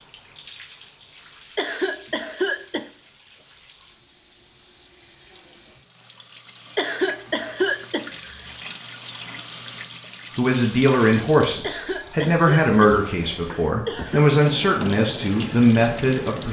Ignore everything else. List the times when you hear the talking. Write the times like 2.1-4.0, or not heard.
10.3-16.4.